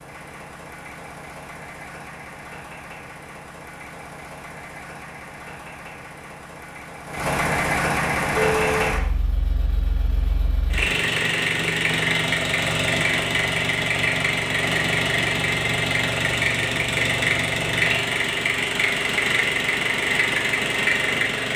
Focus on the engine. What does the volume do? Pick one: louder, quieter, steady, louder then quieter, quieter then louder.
louder.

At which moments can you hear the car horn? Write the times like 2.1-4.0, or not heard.
8.3-9.0.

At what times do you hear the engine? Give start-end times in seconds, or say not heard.
0.0-21.5.